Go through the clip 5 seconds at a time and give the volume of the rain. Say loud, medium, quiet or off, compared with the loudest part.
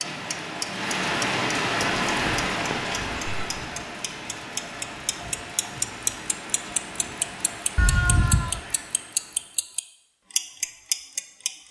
loud, medium, off.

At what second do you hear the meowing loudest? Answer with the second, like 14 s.
8 s.